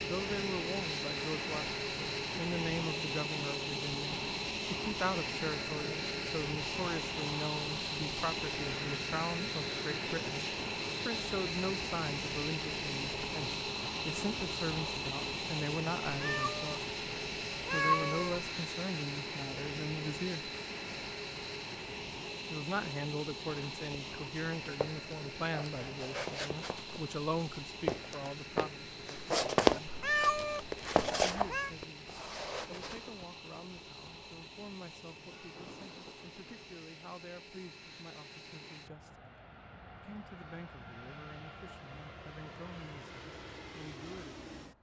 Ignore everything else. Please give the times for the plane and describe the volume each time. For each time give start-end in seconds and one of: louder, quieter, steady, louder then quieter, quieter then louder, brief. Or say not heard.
0.0-44.7 quieter.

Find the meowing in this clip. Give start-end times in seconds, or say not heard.
16.1-16.8, 17.5-18.4, 29.9-31.7.